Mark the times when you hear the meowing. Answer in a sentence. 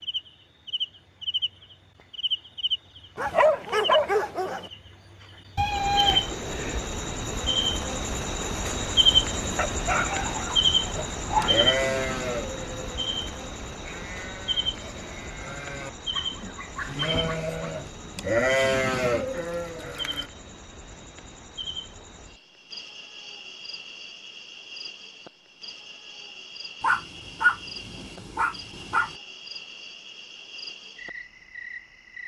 The meowing can be heard from 5.5 to 6.8 s.